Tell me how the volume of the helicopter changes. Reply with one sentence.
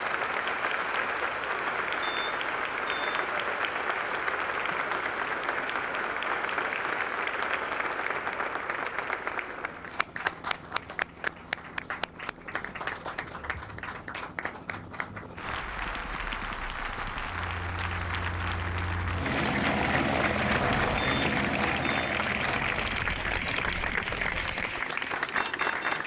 The loudness of the helicopter goes up.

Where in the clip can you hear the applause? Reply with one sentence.
You can hear the applause from 0.0 to 26.0 s.